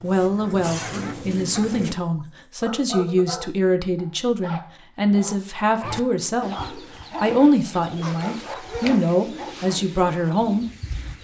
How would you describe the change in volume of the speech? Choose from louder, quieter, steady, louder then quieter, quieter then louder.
steady.